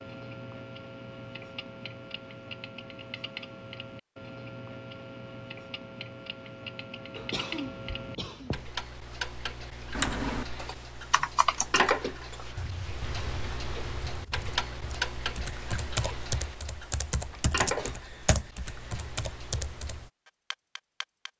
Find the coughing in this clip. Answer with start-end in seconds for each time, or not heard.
7.2-8.7, 17.6-18.0.